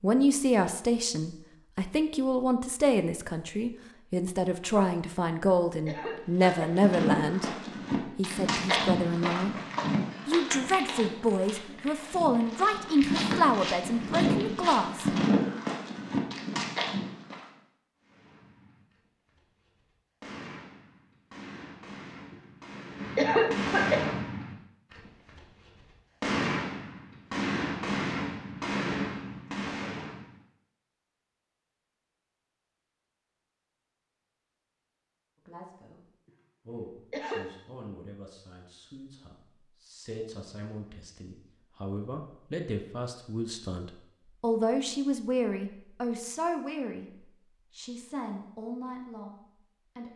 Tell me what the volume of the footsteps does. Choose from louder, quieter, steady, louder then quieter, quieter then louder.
quieter then louder.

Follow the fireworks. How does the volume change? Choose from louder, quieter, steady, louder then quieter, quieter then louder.
louder.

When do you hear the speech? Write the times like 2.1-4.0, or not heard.
0.0-7.5, 8.2-9.6, 10.2-15.2, 35.5-36.0, 36.6-50.1.